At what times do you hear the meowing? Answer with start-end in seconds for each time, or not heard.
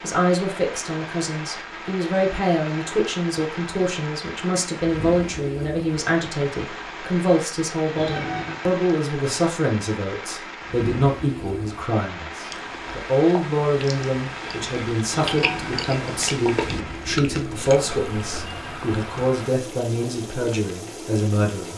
8.0-8.6, 15.2-15.8.